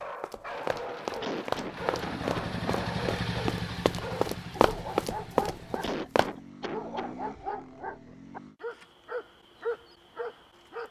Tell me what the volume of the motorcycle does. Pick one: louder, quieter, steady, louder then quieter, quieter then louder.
quieter.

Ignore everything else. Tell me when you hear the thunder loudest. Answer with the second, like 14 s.
3 s.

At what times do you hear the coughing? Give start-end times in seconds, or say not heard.
1.2-2.5, 5.8-7.2.